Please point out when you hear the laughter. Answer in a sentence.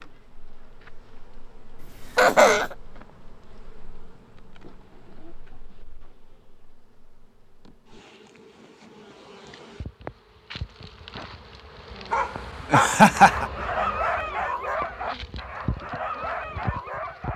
You can hear the laughter from 1.8 to 2.6 s and from 12.7 to 13.4 s.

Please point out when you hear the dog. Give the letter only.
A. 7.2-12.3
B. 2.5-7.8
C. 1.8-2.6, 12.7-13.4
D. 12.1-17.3
D.